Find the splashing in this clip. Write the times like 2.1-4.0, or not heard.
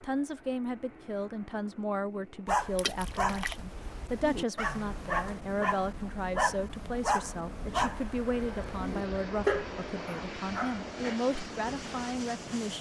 2.8-3.6.